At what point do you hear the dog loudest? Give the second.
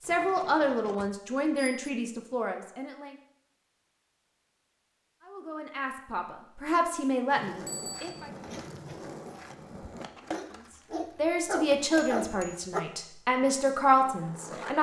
12 s.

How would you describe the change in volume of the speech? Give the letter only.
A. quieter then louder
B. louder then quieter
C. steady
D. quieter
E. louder
A.